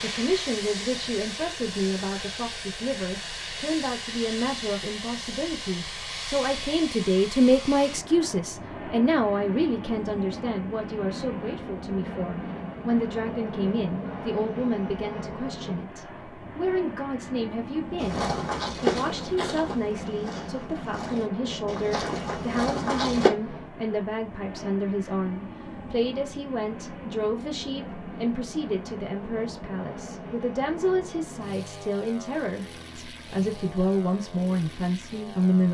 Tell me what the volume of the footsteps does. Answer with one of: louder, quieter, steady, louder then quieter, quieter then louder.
quieter then louder.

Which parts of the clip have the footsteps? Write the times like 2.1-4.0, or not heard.
17.9-23.3.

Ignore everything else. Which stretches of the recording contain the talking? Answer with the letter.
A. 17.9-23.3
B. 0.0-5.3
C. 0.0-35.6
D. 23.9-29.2
C.